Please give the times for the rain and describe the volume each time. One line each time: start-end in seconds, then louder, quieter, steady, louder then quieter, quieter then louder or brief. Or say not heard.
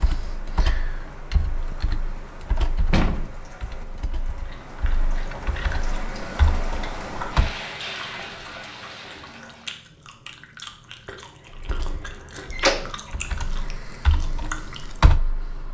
0.0-9.8 louder.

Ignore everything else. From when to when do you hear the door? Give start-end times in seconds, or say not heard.
2.9-4.0, 12.5-12.9.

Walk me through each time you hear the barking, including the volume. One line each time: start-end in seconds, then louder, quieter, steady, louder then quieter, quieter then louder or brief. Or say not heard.
not heard.